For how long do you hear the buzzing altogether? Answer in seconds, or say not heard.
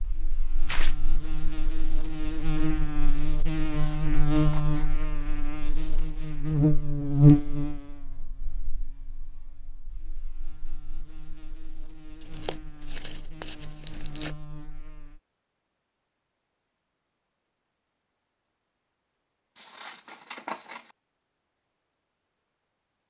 15 s.